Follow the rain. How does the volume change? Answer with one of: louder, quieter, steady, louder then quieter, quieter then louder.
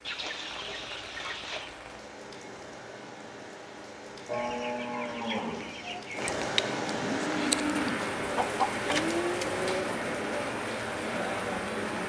louder.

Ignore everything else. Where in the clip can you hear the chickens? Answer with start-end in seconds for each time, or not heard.
0.0-1.8, 4.3-6.3, 8.3-9.7.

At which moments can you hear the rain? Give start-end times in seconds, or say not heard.
0.0-12.0.